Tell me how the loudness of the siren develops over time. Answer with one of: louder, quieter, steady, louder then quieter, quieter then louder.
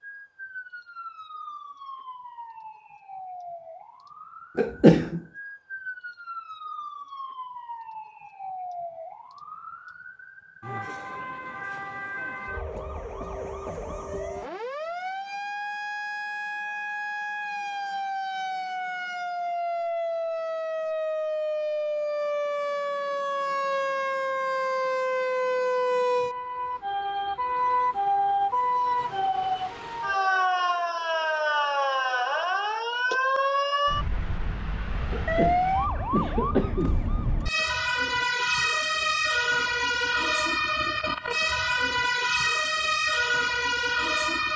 louder.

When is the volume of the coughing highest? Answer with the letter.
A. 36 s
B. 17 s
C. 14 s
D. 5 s
D.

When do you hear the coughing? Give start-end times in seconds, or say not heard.
4.5-5.2, 35.1-37.0.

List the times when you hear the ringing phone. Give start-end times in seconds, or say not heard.
not heard.